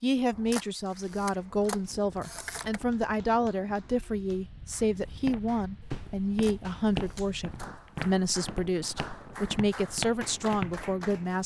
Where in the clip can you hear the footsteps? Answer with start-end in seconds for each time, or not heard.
5.0-10.8.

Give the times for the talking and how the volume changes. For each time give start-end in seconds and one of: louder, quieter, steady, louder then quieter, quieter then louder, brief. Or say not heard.
0.0-11.4 steady.